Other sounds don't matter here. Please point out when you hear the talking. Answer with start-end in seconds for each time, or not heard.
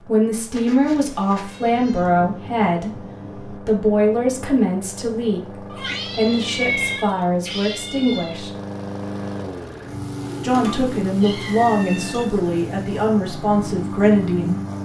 0.1-8.5, 10.4-14.6.